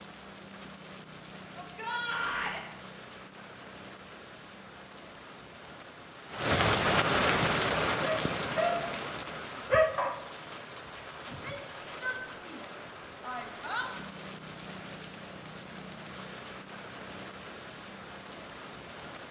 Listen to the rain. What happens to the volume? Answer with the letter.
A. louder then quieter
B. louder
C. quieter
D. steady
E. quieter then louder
A.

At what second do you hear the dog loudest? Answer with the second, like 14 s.
10 s.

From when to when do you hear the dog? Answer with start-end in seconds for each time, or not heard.
8.0-8.9, 9.7-10.2.